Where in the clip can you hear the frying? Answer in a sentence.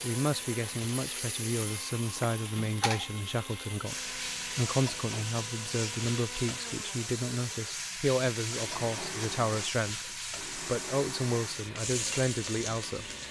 The frying can be heard from 0.0 to 13.2 s.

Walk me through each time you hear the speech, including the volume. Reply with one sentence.
The speech can be heard from 0.0 to 13.1 s, at a steady volume.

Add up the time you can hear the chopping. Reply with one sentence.
The chopping can't be heard in this clip.